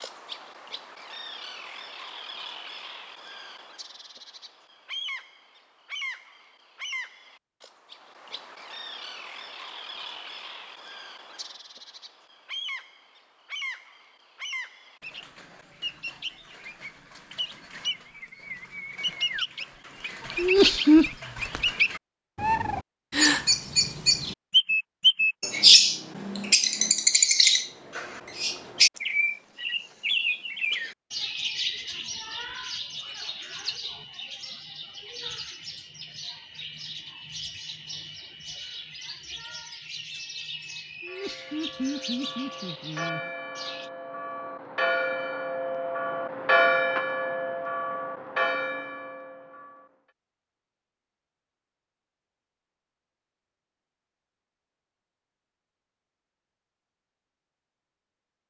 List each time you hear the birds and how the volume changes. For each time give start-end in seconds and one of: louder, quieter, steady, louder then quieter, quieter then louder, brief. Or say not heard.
0.0-43.9 louder then quieter.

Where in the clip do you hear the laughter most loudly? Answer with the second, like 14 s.
21 s.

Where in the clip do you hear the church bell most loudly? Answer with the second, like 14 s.
47 s.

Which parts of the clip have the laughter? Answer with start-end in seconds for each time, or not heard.
20.4-21.1, 41.0-43.3.